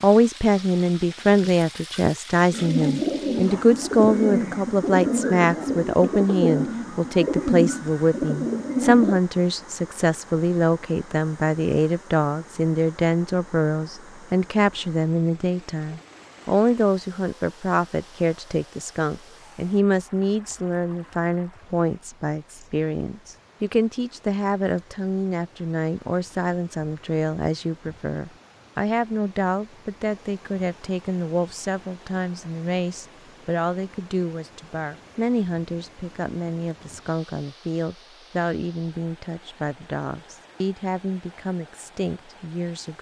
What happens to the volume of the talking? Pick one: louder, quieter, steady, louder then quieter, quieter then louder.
quieter.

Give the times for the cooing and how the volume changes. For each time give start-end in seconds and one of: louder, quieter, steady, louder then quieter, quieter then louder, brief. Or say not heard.
2.5-9.2 steady.